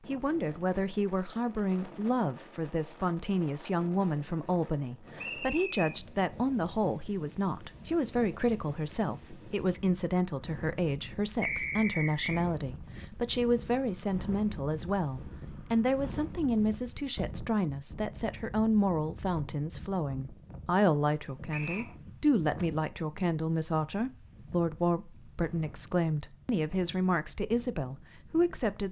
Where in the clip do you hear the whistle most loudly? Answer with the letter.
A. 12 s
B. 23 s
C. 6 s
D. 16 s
A.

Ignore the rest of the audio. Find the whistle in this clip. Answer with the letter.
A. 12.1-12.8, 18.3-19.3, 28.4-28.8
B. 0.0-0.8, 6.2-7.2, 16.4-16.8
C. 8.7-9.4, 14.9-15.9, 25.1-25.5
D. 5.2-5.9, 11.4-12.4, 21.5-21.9
D.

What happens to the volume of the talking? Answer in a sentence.
The volume of the talking stays about the same.